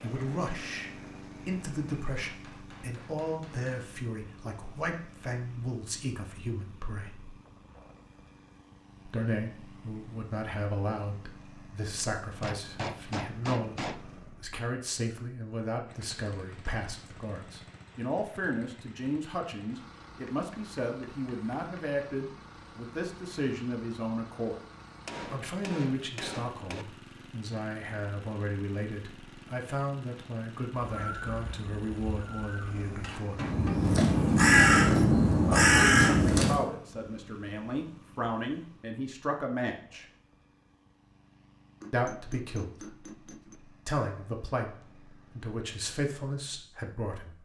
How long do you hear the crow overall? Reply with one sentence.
You can hear the crow for 6 seconds altogether.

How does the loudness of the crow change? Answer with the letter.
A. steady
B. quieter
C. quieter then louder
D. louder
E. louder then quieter
D.